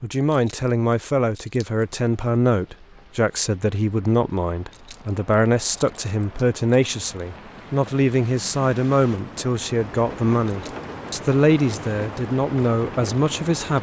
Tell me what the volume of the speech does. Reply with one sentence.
The loudness of the speech stays about the same.